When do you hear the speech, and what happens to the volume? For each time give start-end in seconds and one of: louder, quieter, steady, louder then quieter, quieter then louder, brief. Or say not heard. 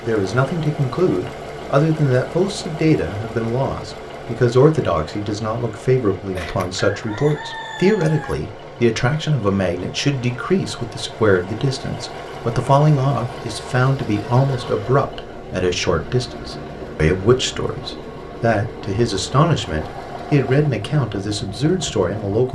0.0-22.4 steady.